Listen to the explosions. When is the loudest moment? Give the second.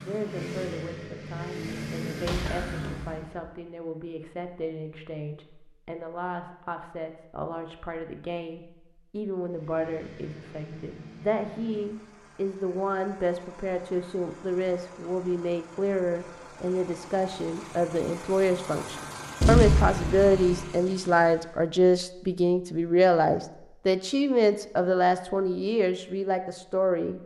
20 s.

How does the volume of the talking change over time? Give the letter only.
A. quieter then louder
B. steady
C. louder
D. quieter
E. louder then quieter
C.